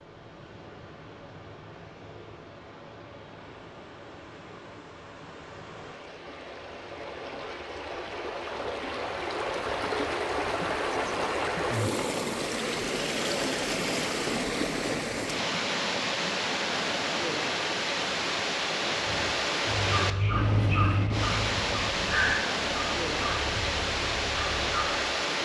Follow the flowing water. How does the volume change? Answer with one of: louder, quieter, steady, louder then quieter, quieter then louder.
louder.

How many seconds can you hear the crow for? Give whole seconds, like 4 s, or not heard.
6 s.